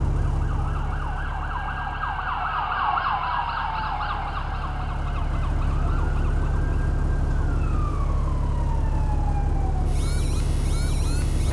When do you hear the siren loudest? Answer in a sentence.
The volume of the siren peaks at 3 seconds.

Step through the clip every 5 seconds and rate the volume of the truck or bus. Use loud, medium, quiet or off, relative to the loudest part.
medium, loud, loud.